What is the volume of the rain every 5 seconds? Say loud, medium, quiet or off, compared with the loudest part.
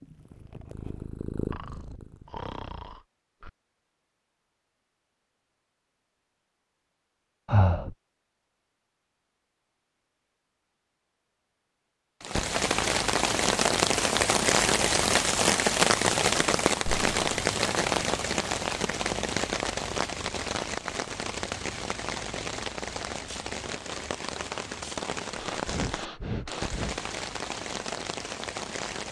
off, off, loud, loud, medium, medium.